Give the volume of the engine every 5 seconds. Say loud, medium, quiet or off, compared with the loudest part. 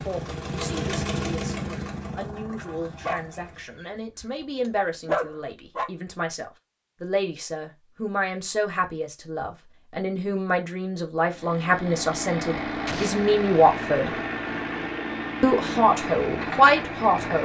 loud, off, loud, loud.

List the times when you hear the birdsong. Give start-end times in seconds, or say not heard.
not heard.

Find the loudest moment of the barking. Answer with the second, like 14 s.
5 s.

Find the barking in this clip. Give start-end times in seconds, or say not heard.
3.0-5.9.